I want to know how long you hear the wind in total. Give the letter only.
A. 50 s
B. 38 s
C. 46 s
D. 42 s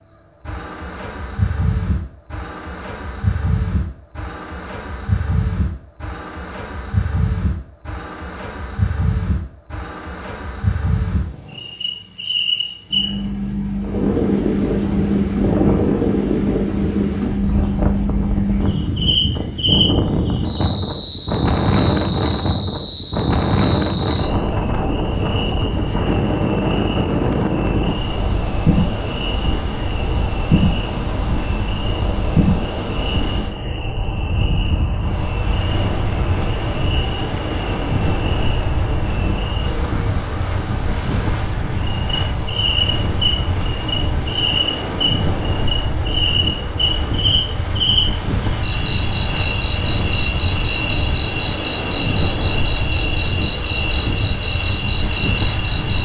D.